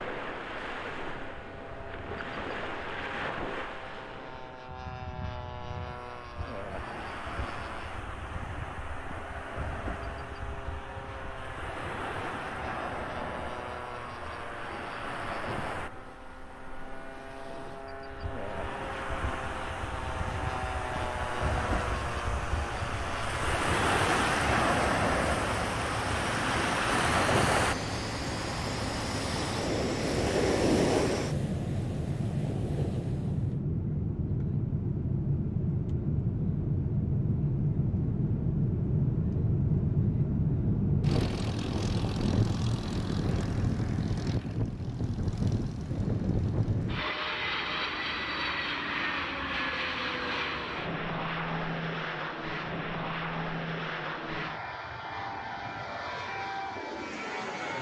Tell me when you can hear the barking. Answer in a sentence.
You can't hear the barking here.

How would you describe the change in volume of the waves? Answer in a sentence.
The volume of the waves goes up.